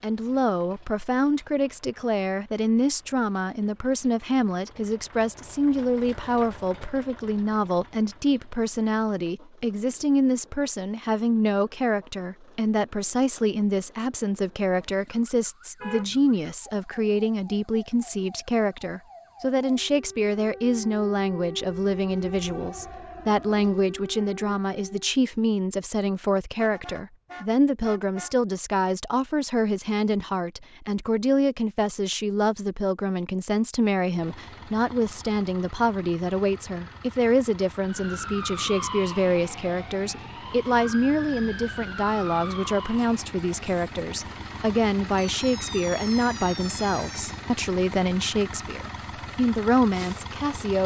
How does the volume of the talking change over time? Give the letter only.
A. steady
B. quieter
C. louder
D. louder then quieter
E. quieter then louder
A.